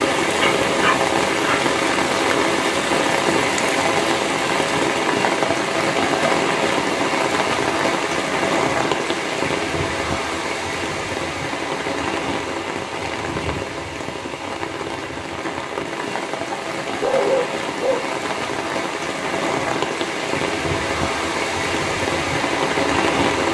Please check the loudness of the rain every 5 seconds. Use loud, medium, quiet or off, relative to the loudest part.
loud, loud, medium, medium, loud.